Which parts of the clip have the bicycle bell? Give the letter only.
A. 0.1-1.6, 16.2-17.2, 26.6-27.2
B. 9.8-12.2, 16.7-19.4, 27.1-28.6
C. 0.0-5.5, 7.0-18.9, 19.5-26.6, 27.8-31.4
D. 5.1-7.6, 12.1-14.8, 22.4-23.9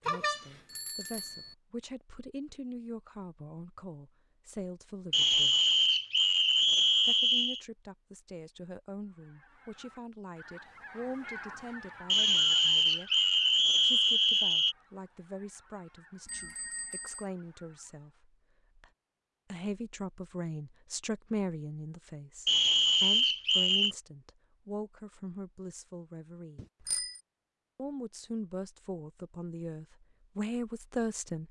A.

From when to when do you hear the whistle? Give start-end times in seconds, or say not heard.
5.1-7.6, 12.1-14.8, 22.4-23.9.